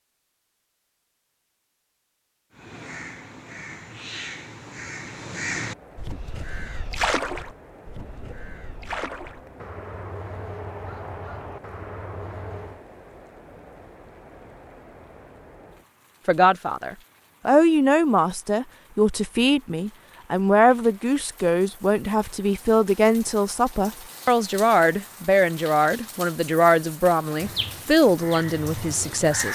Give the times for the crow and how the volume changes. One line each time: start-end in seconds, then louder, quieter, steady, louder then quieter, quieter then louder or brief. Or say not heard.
2.5-12.8 louder then quieter
27.2-29.5 brief.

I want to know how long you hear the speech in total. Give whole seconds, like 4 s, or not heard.
13 s.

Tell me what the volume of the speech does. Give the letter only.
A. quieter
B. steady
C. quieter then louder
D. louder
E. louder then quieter
B.